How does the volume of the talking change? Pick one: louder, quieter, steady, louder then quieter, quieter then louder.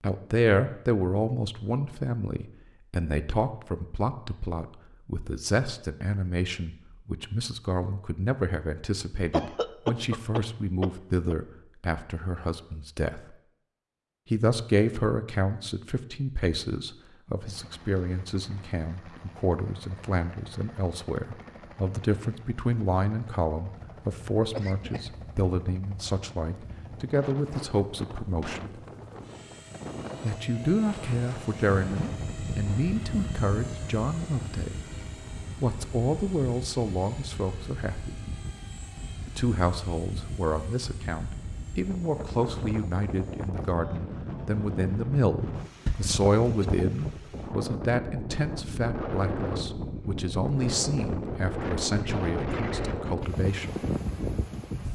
steady.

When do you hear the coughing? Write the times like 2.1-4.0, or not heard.
9.3-11.3, 24.4-25.1, 45.9-46.6.